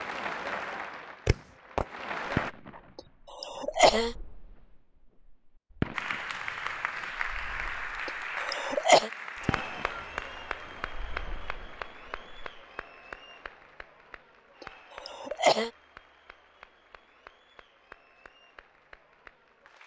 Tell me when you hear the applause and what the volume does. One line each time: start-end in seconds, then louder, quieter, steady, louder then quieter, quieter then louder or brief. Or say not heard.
0.0-2.5 brief
5.9-19.8 quieter.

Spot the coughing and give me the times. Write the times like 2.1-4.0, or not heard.
3.0-4.2, 8.1-9.1, 14.6-15.7.